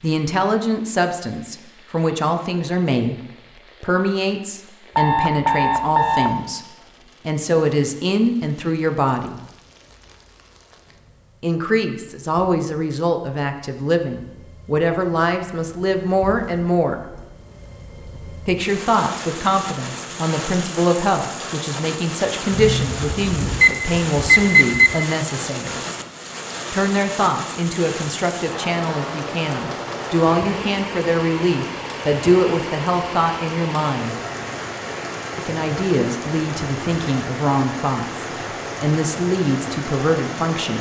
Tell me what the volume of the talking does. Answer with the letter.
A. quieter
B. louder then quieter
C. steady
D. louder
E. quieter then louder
C.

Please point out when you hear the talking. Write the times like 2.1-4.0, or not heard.
0.0-9.4, 11.4-17.0, 18.4-25.8, 26.7-34.1, 35.4-40.7.